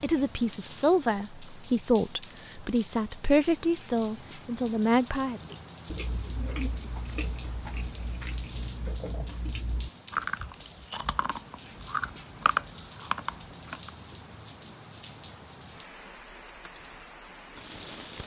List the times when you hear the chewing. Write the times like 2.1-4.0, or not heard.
5.3-13.9.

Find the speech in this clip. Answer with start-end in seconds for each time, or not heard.
0.0-5.4.